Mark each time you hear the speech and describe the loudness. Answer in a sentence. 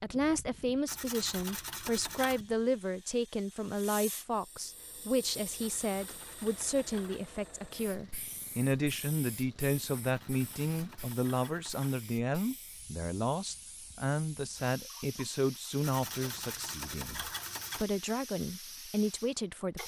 You can hear the speech from 0.0 to 19.8 s, at a steady volume.